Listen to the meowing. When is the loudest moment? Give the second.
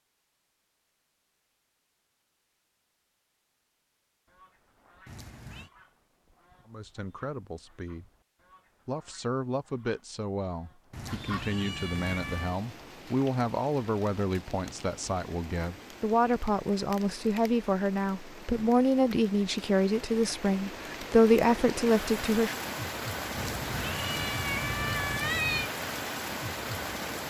25 s.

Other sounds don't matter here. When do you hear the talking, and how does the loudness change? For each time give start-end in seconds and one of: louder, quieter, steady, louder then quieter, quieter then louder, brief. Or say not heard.
6.7-8.1 brief
8.8-22.6 louder.